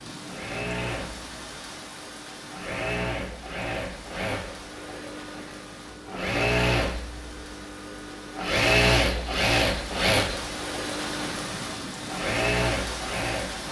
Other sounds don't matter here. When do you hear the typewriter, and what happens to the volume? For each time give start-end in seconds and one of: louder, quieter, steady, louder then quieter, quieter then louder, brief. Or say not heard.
not heard.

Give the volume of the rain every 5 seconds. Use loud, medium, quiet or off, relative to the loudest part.
medium, medium, loud.